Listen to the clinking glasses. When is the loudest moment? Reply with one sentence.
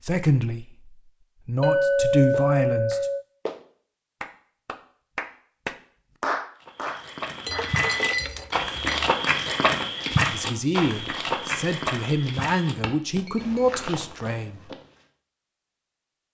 The volume of the clinking glasses peaks at 2 seconds.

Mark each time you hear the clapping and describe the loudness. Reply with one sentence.
You can hear the clapping from 2.3 to 8.0 s, getting louder then quieter.